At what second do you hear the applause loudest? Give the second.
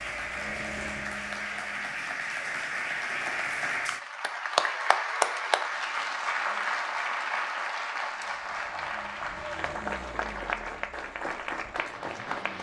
5 s.